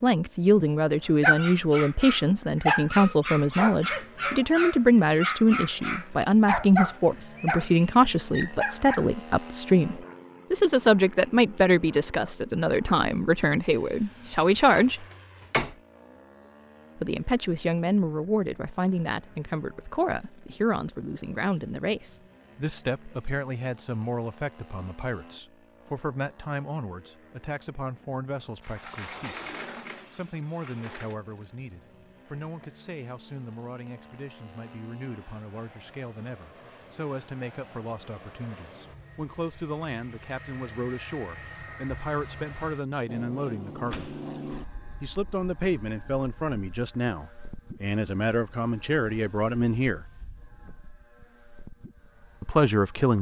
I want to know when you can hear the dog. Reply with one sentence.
The dog can be heard from 1.2 to 9.1 s.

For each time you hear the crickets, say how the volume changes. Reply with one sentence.
You can't hear the crickets here.